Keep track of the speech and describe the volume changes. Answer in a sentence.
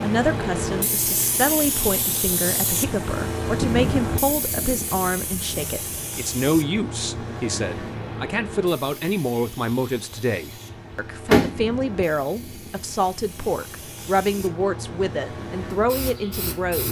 The volume of the speech stays about the same.